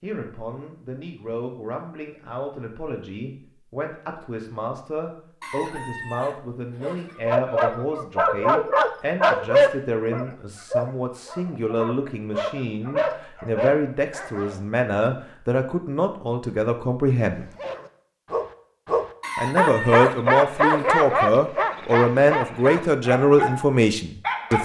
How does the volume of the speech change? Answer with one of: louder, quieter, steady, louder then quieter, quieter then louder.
louder.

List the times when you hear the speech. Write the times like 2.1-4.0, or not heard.
0.0-17.4, 19.4-24.5.